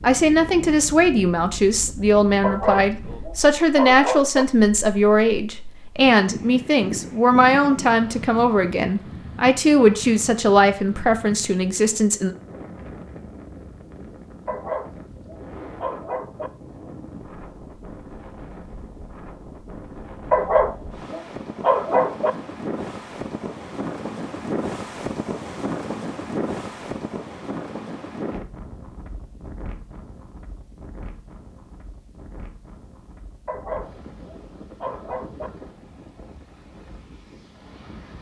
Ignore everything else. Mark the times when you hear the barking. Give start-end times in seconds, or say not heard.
2.4-4.5, 14.4-16.5, 20.3-22.3, 33.5-35.5.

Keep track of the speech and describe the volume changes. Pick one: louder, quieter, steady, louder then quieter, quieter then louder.
steady.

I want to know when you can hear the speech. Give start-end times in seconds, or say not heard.
0.0-12.3.